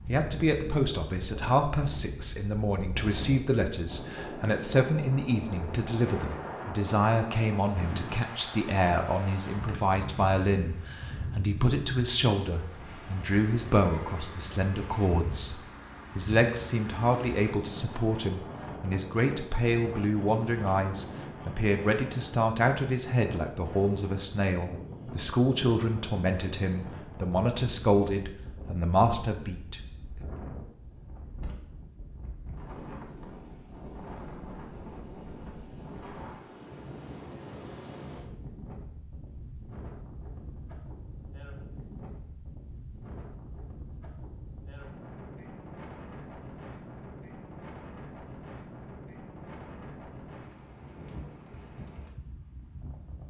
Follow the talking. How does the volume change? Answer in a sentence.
The loudness of the talking stays about the same.